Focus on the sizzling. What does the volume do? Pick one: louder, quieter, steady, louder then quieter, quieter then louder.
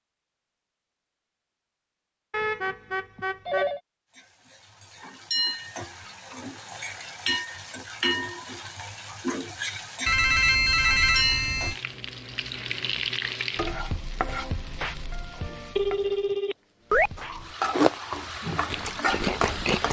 steady.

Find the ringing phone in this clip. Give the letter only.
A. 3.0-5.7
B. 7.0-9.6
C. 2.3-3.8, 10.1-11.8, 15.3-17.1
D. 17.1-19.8
C.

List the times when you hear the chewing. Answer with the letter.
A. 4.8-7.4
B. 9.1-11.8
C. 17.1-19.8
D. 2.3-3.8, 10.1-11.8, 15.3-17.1
C.